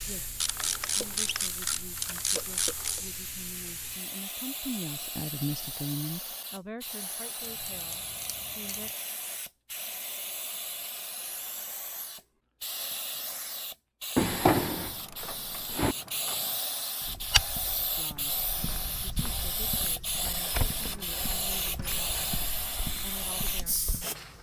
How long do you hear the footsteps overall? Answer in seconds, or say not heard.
7 s.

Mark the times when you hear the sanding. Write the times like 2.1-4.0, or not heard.
not heard.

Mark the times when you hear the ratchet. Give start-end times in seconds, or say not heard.
0.4-3.0, 7.4-8.9, 14.8-16.6, 20.4-22.5.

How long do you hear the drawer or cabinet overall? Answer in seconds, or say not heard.
2 s.